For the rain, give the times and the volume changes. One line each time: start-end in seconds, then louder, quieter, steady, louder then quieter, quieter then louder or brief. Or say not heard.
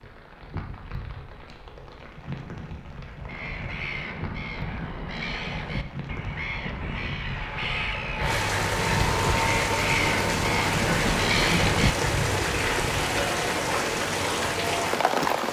0.0-15.4 louder.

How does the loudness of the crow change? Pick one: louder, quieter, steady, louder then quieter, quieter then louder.
louder.